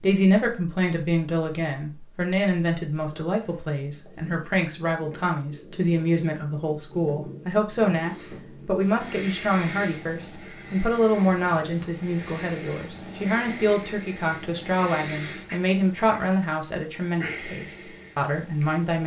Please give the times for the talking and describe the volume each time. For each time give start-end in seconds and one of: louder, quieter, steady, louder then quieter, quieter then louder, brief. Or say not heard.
0.0-19.0 steady.